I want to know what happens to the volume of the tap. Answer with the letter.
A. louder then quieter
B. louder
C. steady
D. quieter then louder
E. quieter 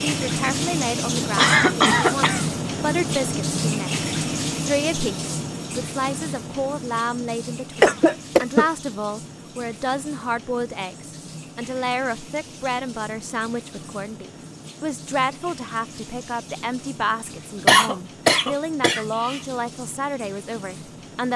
E.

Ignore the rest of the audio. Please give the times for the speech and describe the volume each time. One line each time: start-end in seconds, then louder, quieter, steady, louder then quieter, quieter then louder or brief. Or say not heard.
0.0-21.3 steady.